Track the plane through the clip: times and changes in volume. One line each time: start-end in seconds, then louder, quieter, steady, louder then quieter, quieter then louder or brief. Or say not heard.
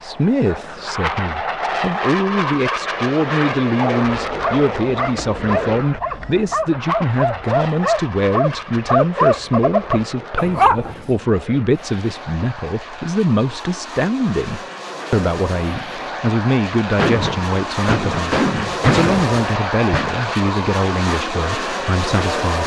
0.0-22.6 quieter then louder.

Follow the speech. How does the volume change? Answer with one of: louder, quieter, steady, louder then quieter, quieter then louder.
steady.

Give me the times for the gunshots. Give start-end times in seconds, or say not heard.
16.9-20.2.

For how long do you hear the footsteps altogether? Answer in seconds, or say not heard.
not heard.